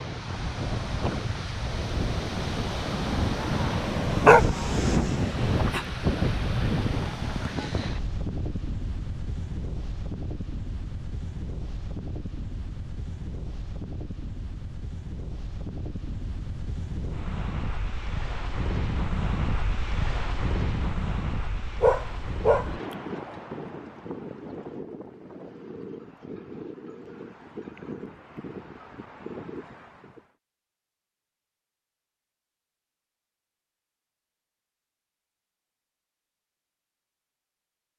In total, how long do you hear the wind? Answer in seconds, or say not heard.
30 s.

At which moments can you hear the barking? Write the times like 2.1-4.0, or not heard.
4.2-5.8, 21.8-22.8.